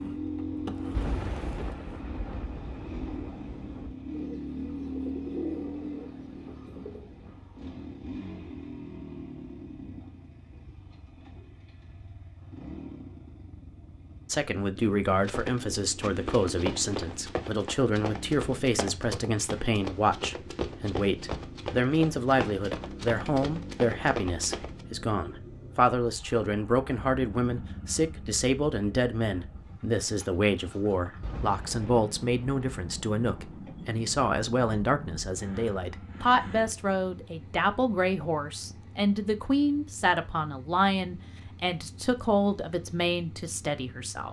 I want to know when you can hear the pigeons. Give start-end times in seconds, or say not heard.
4.1-7.0.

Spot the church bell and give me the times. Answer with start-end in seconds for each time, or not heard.
not heard.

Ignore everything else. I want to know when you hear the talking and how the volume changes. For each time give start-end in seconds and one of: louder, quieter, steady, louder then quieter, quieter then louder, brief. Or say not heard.
14.2-44.2 steady.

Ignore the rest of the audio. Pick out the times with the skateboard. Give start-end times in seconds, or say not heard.
0.0-1.9.